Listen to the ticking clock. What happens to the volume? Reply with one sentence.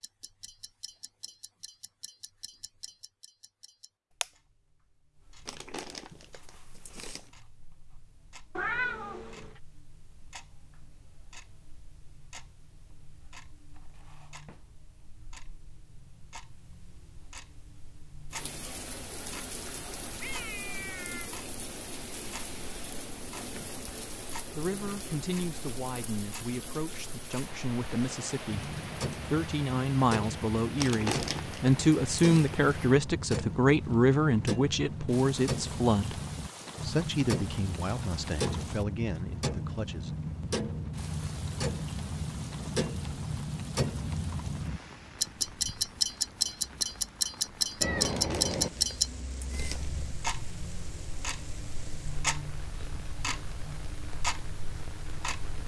The volume of the ticking clock goes up.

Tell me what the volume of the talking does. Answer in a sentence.
The volume of the talking goes up, then down.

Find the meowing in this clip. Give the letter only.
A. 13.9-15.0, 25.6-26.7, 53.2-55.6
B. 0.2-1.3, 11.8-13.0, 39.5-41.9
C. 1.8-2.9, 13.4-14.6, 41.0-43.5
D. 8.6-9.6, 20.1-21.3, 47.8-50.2
D.